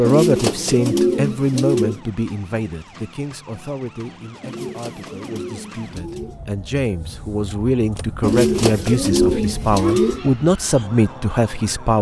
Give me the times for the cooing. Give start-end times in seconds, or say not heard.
0.0-2.0, 4.4-6.4, 8.2-10.2.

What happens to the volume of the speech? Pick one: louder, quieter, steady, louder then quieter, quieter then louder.
quieter then louder.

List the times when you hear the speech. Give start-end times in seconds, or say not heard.
0.0-11.9.